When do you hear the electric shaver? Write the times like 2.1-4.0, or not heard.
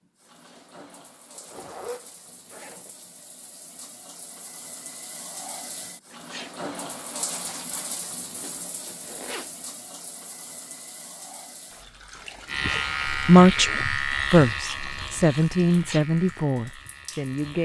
12.4-17.6.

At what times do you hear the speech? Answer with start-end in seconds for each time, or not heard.
13.1-17.6.